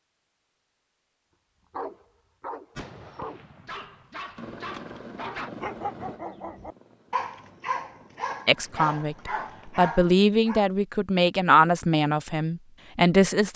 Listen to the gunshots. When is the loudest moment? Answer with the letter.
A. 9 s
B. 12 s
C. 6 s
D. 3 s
D.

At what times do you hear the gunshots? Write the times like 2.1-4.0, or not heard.
2.8-5.0.